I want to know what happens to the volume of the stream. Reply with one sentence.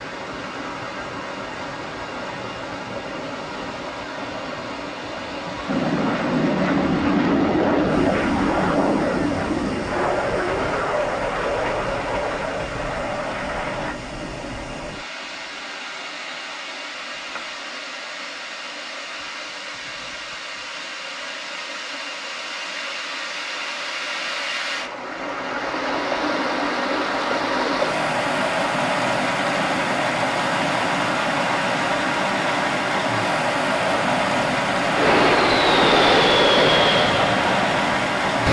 The loudness of the stream goes up.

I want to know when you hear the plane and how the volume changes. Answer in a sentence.
You can hear the plane from 5.7 to 13.9 s, getting quieter; and from 33.8 to 38.4 s, getting louder then quieter.